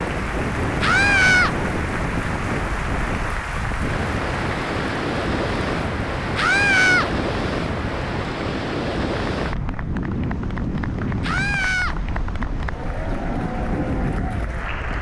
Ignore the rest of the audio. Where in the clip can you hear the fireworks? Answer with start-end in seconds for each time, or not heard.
not heard.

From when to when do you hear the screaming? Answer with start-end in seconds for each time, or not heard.
0.8-1.6, 6.3-7.1, 11.2-11.9.